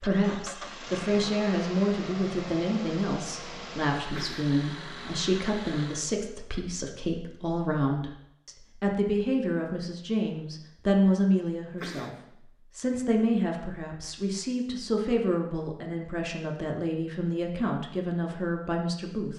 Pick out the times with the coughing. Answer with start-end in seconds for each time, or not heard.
4.1-4.5, 11.8-12.2.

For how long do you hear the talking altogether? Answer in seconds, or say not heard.
19 s.